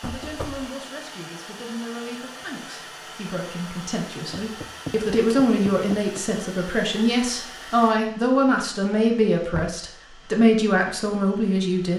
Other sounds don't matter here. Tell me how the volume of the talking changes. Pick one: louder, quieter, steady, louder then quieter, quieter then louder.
louder.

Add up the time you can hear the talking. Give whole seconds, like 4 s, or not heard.
12 s.